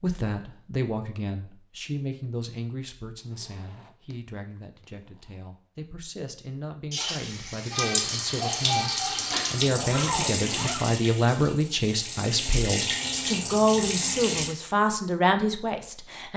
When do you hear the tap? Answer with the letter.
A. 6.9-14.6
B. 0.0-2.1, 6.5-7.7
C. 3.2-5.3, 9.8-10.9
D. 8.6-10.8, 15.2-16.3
A.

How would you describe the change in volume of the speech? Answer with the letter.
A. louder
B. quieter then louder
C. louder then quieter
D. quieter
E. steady
B.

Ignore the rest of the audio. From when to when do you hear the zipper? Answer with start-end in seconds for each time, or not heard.
3.2-5.3, 9.8-10.9.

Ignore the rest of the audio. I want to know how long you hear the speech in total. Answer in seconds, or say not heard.
16 s.